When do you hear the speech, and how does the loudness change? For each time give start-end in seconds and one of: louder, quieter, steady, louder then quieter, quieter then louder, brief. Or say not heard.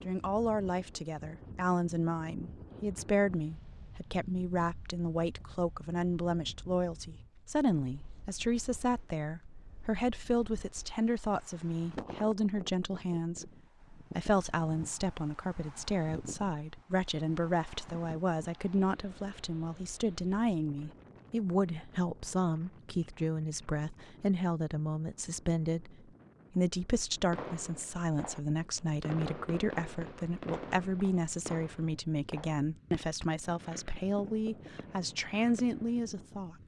0.0-36.6 steady.